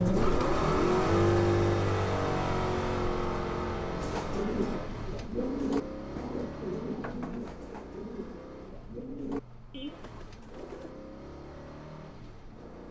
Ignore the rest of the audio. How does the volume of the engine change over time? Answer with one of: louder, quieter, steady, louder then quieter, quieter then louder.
quieter.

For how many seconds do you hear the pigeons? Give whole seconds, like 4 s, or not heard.
7 s.